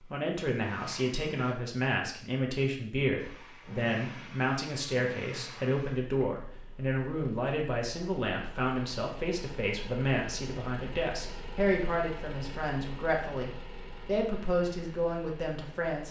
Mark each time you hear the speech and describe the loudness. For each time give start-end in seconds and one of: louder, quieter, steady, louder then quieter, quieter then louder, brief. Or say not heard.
0.0-16.0 steady.